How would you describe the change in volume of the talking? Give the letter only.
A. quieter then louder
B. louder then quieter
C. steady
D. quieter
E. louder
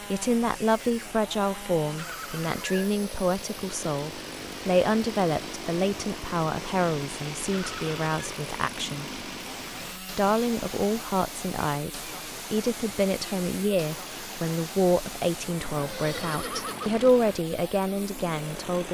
C.